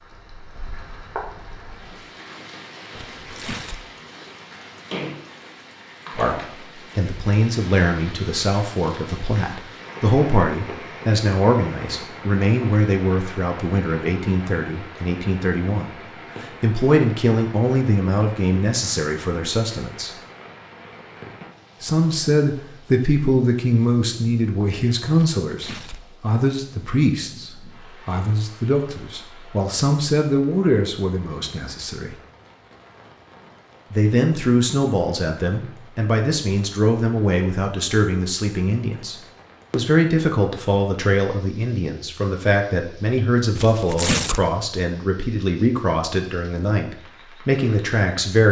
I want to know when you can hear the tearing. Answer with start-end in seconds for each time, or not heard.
3.0-3.9, 25.4-26.1, 43.5-44.5.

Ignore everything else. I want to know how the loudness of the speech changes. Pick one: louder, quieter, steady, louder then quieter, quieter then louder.
steady.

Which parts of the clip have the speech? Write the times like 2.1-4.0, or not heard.
6.2-20.1, 21.8-32.1, 33.9-48.4.